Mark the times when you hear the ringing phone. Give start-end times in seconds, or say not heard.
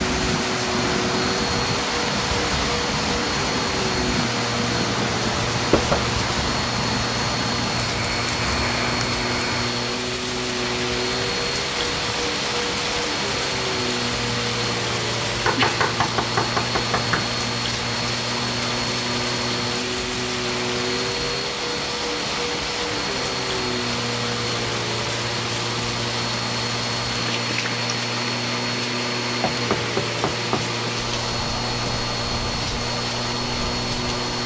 not heard.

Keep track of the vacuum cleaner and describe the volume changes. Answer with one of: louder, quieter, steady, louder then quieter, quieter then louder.
steady.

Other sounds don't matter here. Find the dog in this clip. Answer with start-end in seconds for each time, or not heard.
not heard.